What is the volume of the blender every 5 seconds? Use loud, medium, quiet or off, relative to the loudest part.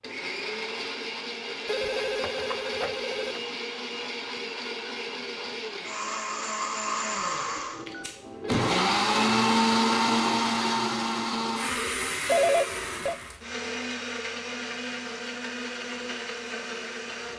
medium, loud, loud, medium.